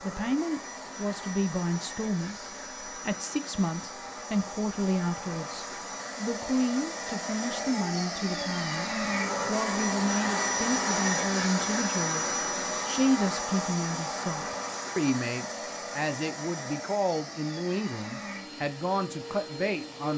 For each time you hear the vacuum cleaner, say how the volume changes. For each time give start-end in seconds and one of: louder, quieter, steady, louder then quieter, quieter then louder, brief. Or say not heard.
0.0-20.1 louder then quieter.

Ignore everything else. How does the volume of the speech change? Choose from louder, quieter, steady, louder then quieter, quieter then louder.
steady.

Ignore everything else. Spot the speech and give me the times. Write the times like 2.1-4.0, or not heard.
0.0-20.1.